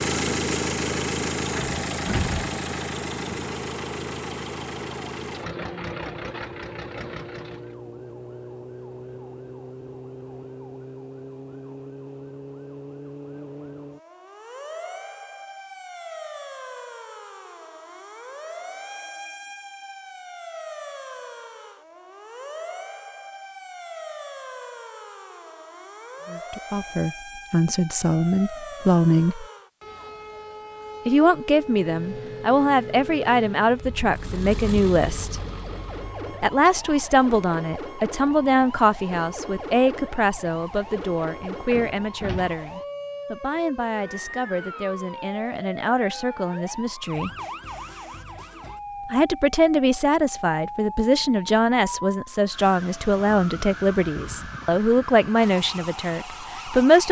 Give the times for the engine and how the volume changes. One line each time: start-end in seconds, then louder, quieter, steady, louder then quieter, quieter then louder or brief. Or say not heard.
0.0-7.8 quieter
31.5-36.5 louder then quieter.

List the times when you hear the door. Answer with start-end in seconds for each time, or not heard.
1.6-2.5, 41.7-42.5.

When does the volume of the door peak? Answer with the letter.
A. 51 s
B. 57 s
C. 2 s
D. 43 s
C.